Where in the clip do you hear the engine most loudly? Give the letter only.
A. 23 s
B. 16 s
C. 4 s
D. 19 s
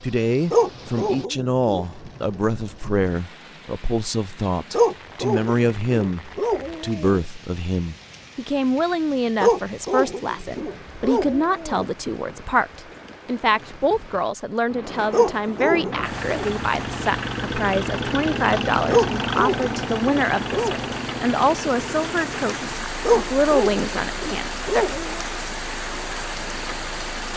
D.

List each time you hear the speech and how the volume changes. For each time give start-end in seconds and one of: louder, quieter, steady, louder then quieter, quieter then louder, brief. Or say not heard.
0.0-24.9 steady.